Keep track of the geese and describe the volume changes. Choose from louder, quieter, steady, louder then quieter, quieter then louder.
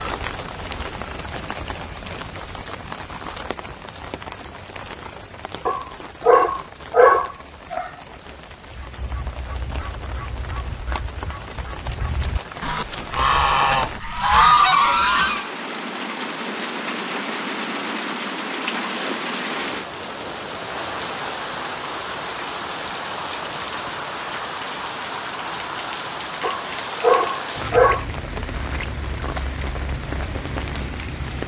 louder.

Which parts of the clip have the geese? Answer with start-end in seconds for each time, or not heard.
8.7-15.5.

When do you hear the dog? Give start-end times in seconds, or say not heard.
5.7-7.9, 26.4-28.1.